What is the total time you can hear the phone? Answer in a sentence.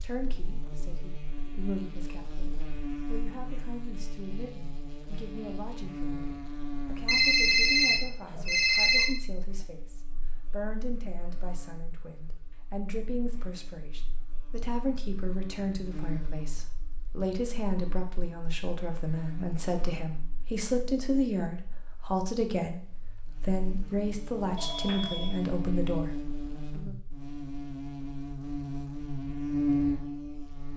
You can hear the phone for 3 seconds altogether.